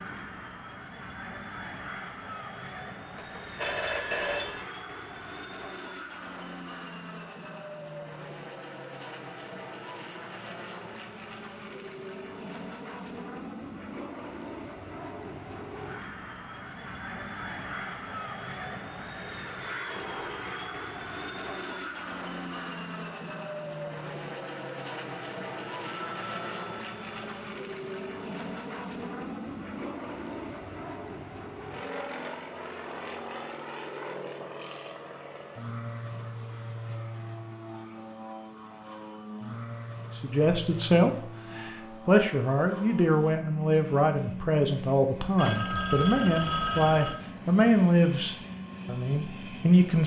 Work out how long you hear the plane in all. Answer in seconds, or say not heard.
50 s.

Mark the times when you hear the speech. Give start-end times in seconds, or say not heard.
40.1-50.0.